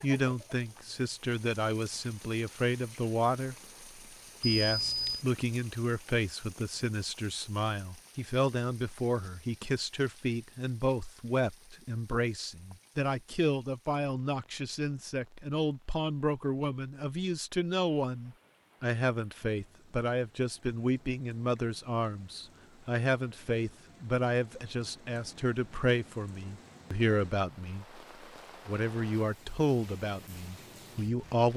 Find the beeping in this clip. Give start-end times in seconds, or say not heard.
4.4-5.2.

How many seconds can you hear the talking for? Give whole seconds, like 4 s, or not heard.
30 s.